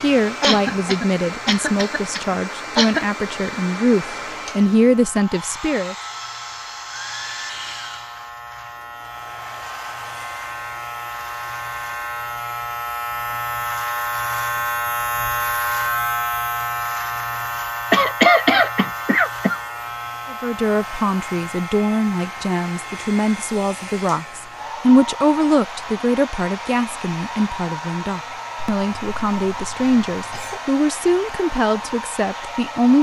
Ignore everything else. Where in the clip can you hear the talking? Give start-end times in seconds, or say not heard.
0.0-6.0, 20.3-32.9.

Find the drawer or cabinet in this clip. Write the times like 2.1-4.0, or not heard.
not heard.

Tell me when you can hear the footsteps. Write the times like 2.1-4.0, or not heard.
not heard.